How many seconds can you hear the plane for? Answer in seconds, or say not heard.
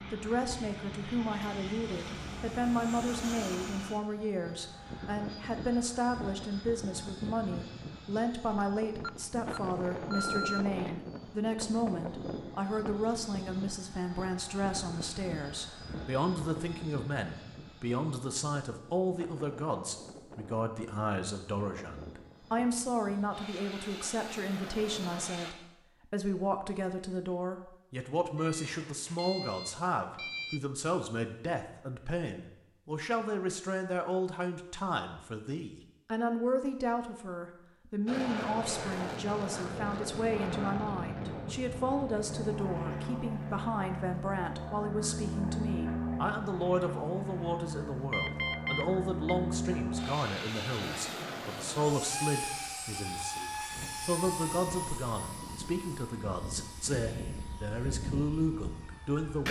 47 s.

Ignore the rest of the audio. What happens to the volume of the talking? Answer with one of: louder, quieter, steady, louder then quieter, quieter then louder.
steady.